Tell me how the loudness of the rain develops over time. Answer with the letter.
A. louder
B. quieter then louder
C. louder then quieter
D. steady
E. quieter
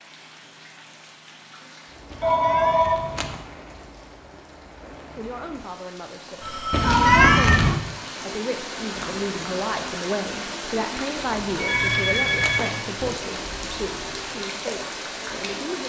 A.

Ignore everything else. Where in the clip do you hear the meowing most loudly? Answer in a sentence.
The loudest moment of the meowing is at 7 seconds.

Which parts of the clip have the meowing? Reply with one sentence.
The meowing can be heard from 2.1 to 3.4 s, from 6.7 to 7.8 s and from 11.6 to 12.7 s.